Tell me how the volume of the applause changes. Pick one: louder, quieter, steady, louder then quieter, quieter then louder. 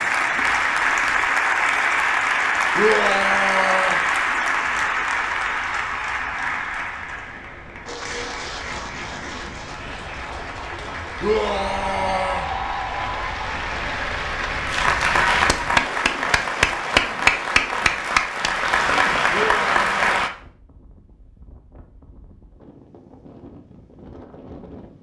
quieter then louder.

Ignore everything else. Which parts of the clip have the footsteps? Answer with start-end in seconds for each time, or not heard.
not heard.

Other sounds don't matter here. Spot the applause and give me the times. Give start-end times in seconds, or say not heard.
0.0-20.3.